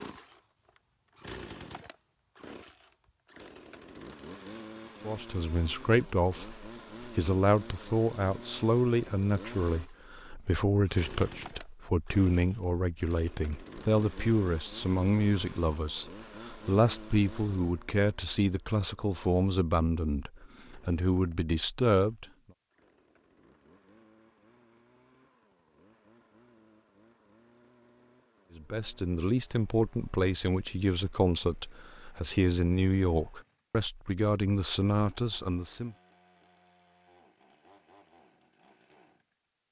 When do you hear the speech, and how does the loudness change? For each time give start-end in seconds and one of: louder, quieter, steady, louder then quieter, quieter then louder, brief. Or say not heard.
5.0-22.2 steady
28.6-36.0 steady.